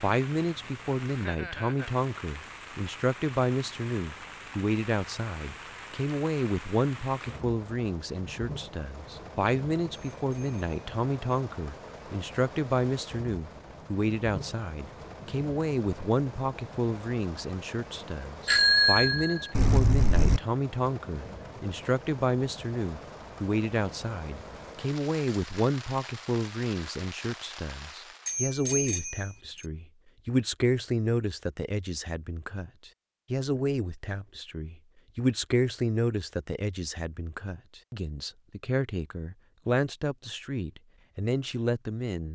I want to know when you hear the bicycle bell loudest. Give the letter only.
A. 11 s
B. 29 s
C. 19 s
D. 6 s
C.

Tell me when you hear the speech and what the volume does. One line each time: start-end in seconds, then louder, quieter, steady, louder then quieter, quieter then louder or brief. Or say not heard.
0.0-42.3 steady.